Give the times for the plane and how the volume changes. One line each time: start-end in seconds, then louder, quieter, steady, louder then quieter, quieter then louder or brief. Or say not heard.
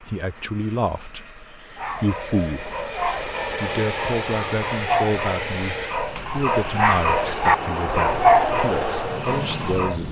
0.0-10.0 louder.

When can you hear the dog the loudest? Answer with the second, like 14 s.
8 s.